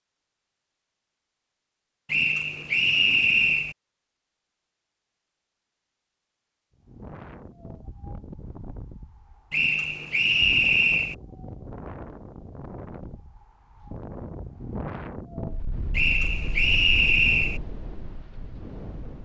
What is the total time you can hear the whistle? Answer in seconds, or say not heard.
5 s.